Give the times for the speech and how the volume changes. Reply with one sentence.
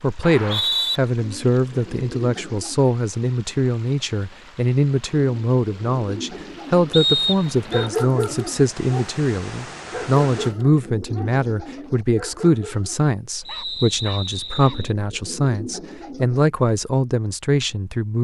The speech can be heard from 0.0 to 18.1 s, at a steady volume.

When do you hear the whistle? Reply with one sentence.
The whistle can be heard from 0.2 to 1.0 s, from 6.9 to 7.9 s and from 13.4 to 14.9 s.